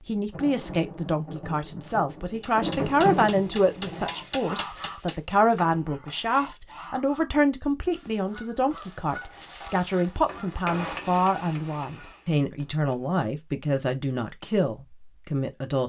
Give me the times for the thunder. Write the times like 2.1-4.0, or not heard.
0.3-4.2.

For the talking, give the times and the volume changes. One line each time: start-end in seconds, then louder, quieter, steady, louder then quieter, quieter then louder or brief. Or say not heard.
0.1-15.8 steady.